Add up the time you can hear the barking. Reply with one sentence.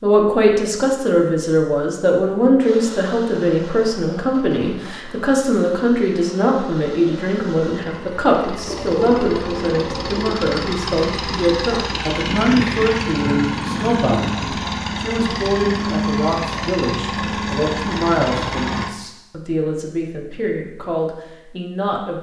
You can't hear the barking here.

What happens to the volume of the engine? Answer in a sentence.
The volume of the engine goes up.